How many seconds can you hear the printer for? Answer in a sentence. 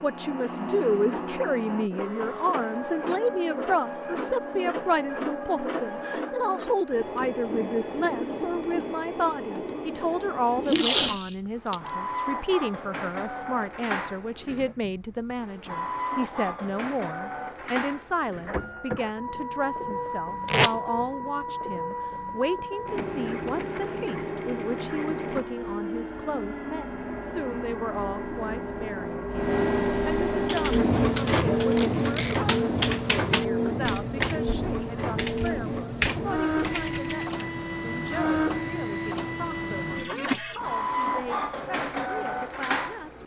The printer can be heard for 43 seconds in total.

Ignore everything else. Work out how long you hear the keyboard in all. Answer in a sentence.
You can hear the keyboard for 7 seconds altogether.